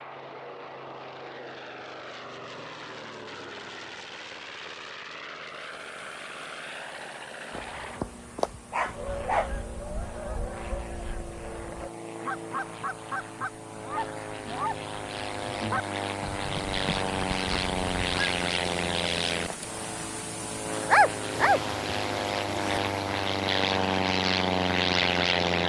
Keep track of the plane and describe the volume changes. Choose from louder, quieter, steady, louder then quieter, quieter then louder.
louder.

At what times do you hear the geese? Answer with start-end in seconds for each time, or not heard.
8.9-18.4.